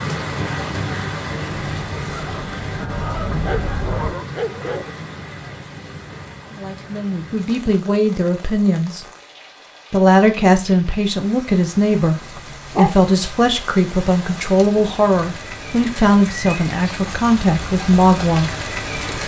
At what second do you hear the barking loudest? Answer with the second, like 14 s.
13 s.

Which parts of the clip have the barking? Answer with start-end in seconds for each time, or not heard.
3.3-4.9, 12.1-13.5.